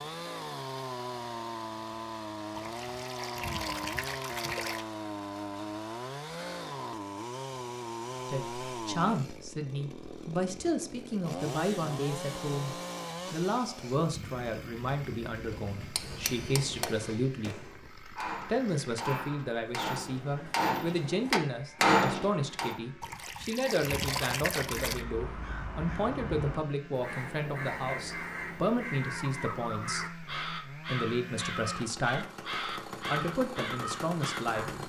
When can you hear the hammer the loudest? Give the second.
22 s.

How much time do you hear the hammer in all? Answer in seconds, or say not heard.
7 s.